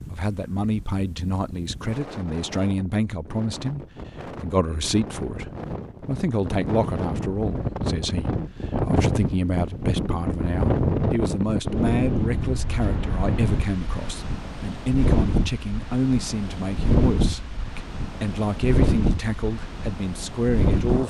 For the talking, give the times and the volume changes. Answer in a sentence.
The talking can be heard from 0.1 to 21.0 s, at a steady volume.